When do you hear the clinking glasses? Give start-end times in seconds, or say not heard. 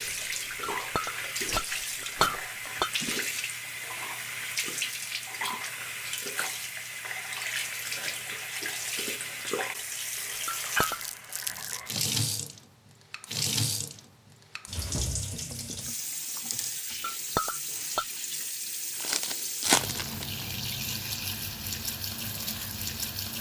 0.6-3.1, 10.4-11.0, 17.0-18.1.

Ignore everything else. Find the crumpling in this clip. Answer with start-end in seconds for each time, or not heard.
0.1-2.5, 10.8-12.0, 18.9-20.4.